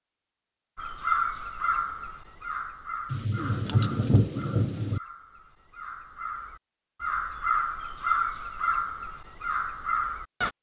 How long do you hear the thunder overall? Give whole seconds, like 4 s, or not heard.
2 s.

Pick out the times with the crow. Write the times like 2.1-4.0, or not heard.
0.8-10.5.